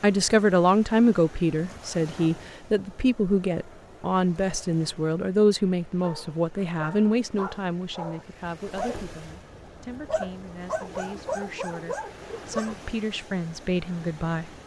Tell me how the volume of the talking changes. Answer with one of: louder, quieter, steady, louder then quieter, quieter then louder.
quieter then louder.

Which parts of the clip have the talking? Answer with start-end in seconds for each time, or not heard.
0.0-14.5.